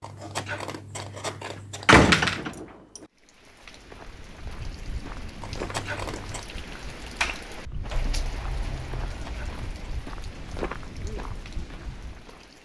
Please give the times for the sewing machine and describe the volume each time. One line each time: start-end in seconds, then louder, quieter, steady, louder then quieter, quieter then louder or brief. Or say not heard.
not heard.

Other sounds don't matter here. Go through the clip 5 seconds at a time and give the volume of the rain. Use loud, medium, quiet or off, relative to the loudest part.
medium, loud, medium.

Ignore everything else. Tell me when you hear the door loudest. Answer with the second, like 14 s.
2 s.